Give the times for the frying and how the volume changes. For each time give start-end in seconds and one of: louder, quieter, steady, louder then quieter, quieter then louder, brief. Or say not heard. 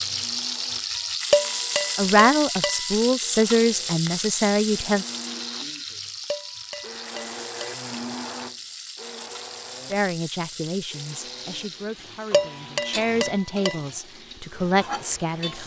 0.0-15.6 quieter.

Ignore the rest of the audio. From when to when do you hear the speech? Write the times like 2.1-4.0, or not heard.
1.9-5.0, 9.9-15.6.